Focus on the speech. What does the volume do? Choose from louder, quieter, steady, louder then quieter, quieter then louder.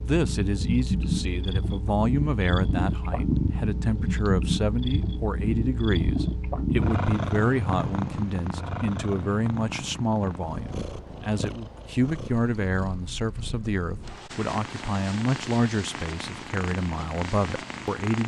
steady.